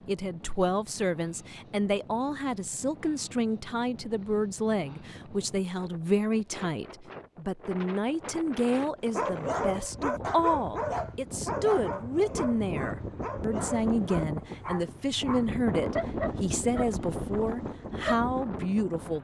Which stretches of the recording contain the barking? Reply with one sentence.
You can hear the barking from 9.1 to 18.2 s.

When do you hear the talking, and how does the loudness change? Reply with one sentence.
You can hear the talking from 0.1 to 19.2 s, at a steady volume.